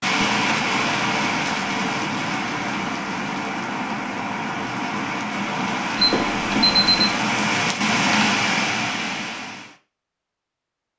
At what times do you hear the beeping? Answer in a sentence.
You can hear the beeping from 6.0 to 7.2 s.